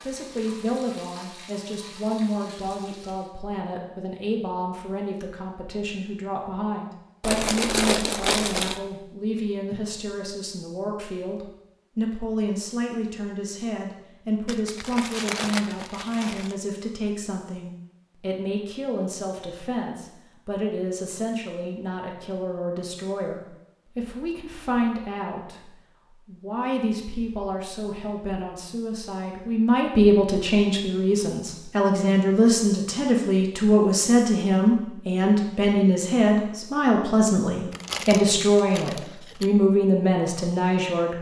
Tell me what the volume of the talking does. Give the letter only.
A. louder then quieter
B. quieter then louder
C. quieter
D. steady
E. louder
E.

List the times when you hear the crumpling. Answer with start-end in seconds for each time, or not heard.
7.2-8.8, 14.4-16.6, 37.7-39.5.